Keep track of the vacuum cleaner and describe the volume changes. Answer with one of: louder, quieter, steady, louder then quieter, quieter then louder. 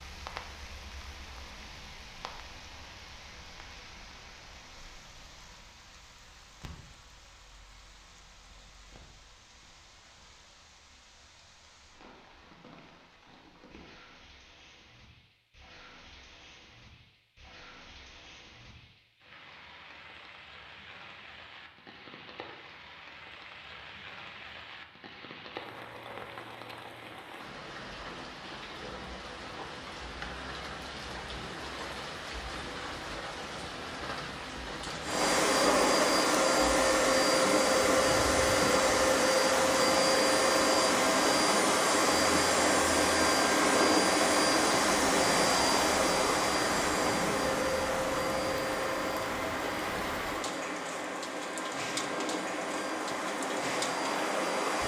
quieter.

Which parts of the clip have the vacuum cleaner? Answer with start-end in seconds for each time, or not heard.
35.0-54.8.